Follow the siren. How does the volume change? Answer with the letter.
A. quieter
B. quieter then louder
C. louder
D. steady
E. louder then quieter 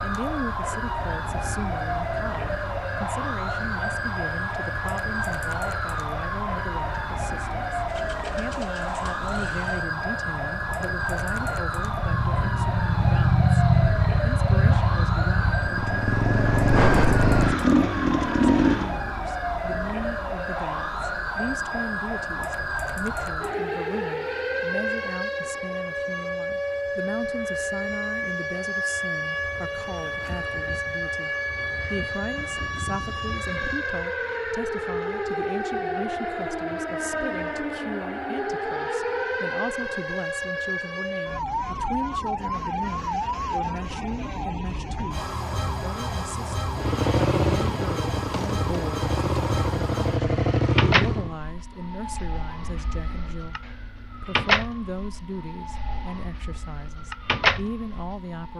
D.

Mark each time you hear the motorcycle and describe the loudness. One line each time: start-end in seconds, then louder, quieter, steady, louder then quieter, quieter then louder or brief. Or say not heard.
0.1-18.9 louder
46.8-51.4 quieter then louder.